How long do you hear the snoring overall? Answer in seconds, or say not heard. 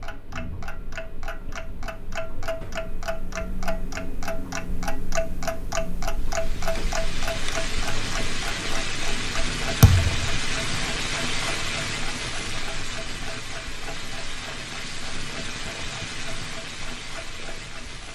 not heard.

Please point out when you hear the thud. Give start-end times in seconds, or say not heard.
9.8-10.3.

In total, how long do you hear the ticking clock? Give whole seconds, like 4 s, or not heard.
18 s.